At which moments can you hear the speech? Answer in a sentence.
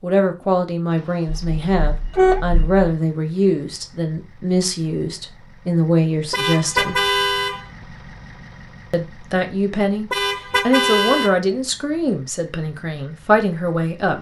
You can hear the speech from 0.0 to 7.0 s and from 8.9 to 14.1 s.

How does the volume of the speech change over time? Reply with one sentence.
The volume of the speech stays about the same.